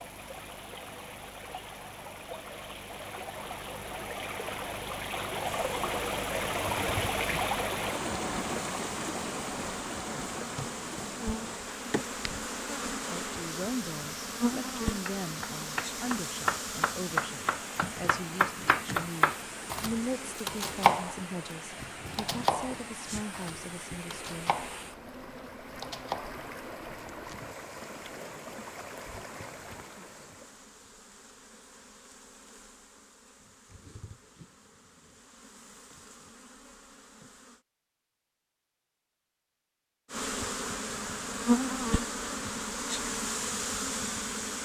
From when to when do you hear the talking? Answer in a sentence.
The talking can be heard from 13.1 to 24.6 s.